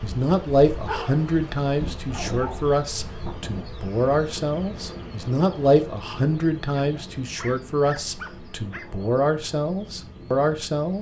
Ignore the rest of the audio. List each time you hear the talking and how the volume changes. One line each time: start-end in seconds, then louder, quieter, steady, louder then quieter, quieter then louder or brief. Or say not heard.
0.0-10.9 steady.